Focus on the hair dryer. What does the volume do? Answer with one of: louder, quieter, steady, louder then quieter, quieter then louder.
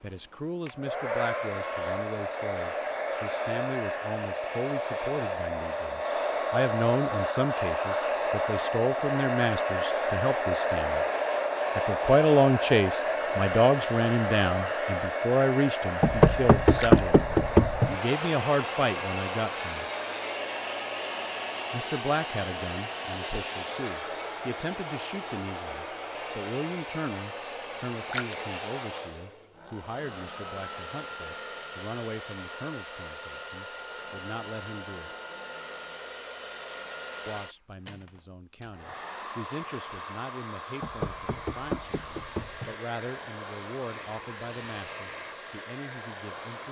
quieter.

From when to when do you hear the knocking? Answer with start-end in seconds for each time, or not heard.
16.0-17.9, 40.8-42.8.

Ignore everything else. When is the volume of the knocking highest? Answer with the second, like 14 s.
17 s.